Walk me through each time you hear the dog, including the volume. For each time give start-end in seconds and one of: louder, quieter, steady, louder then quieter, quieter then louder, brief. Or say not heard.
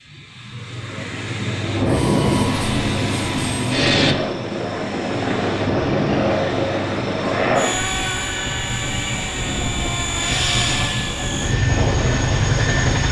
not heard.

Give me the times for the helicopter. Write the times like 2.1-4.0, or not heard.
1.5-13.0.